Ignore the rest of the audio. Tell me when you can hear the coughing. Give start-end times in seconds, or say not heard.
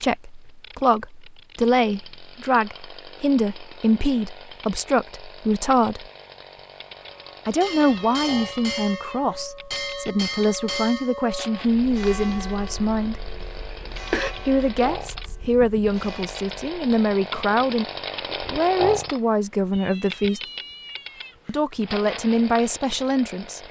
13.4-14.3.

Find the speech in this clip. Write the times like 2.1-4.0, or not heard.
0.0-6.0, 7.5-13.2, 14.4-20.4, 21.4-23.6.